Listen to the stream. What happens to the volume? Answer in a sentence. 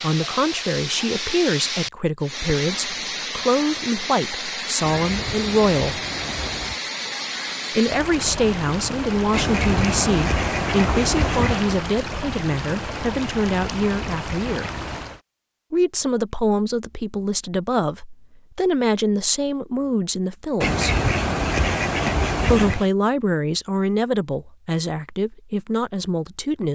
The volume of the stream stays about the same.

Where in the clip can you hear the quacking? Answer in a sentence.
The quacking can be heard from 4.8 to 6.8 s, from 9.3 to 11.7 s and from 20.6 to 22.9 s.